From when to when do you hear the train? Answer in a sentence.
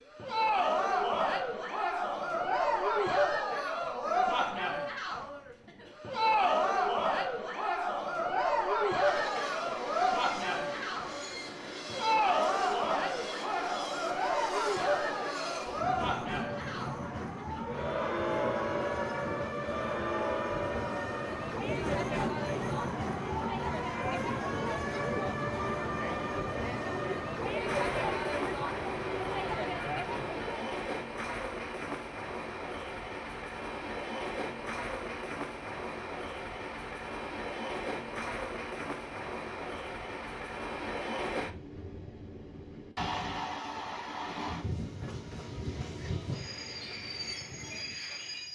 You can hear the train from 8.9 to 48.5 s.